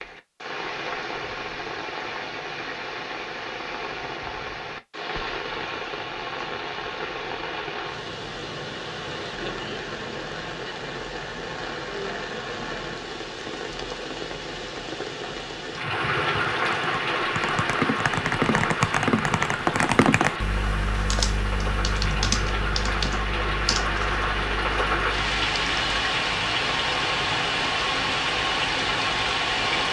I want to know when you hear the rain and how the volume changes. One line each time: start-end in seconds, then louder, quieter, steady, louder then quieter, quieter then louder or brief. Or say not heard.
0.0-29.8 louder.